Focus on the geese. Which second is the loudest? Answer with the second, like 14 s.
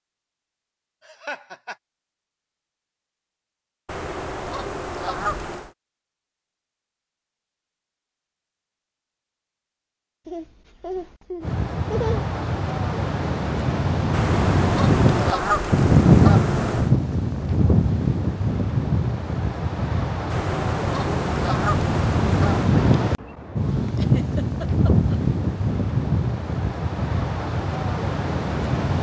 15 s.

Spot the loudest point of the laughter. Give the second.
12 s.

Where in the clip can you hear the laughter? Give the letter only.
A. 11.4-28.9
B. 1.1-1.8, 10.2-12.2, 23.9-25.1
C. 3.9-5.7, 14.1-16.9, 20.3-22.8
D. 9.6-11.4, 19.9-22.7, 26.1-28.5
B.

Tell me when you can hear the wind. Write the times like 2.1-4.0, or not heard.
11.4-28.9.